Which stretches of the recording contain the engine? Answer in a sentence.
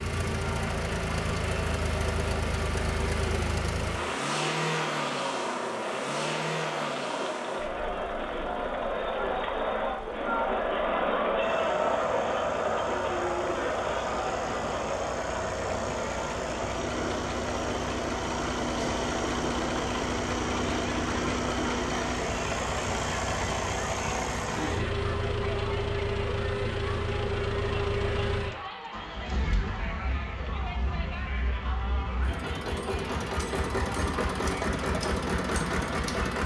The engine can be heard from 0.0 to 36.4 s.